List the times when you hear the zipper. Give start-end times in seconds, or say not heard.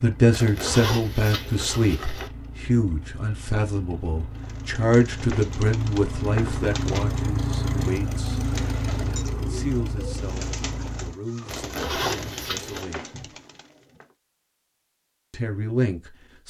0.3-2.3, 11.4-12.8.